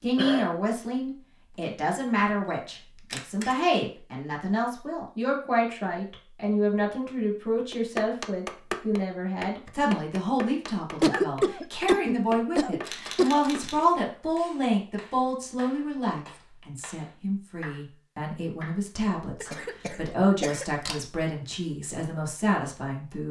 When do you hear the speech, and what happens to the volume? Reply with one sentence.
The speech can be heard from 0.0 to 23.2 s, at a steady volume.